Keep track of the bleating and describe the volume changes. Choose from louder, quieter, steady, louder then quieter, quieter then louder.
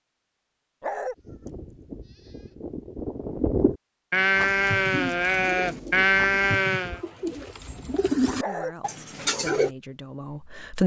louder.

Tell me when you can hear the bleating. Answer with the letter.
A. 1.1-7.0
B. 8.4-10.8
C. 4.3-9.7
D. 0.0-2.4
A.